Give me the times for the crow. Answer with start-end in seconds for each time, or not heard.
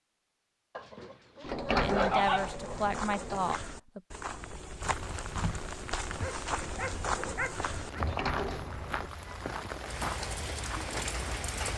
not heard.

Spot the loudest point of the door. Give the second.
2 s.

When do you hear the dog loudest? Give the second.
2 s.